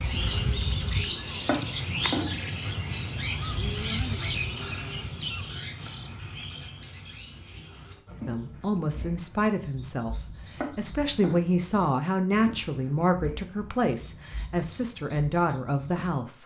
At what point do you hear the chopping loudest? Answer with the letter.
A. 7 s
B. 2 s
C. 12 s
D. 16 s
B.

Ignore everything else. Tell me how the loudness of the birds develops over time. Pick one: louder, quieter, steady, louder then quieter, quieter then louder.
quieter.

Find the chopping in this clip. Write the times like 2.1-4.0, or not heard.
1.4-2.4, 10.6-11.4.